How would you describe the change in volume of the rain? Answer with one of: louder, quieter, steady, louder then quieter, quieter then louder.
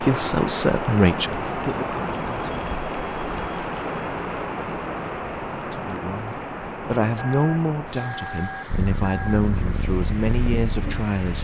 quieter.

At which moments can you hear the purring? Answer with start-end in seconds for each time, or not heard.
8.7-11.3.